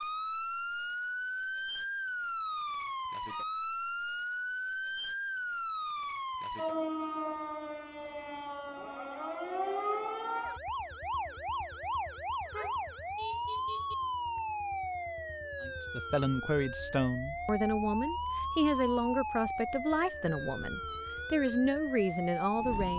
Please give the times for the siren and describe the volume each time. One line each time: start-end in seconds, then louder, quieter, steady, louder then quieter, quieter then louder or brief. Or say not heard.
0.0-22.9 steady.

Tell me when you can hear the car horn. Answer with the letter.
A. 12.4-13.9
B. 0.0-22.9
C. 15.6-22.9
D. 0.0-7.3
A.